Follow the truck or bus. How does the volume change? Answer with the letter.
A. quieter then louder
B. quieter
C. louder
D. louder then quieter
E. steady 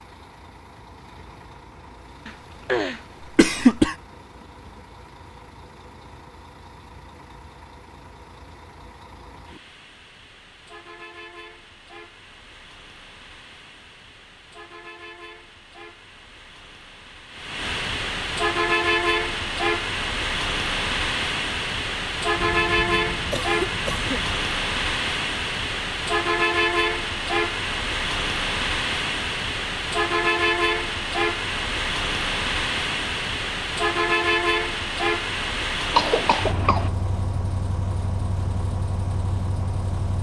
C.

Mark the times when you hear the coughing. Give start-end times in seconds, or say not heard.
2.2-4.0, 22.4-24.4, 35.9-36.9.